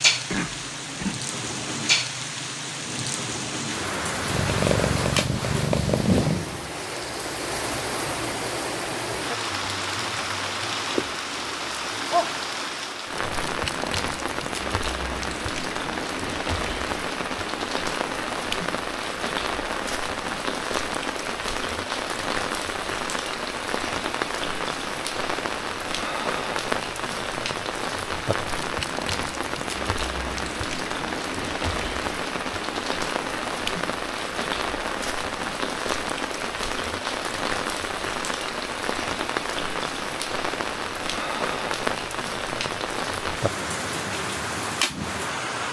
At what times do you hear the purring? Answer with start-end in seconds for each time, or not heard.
4.1-6.5.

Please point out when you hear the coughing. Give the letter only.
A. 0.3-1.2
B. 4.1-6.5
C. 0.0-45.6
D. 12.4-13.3
A.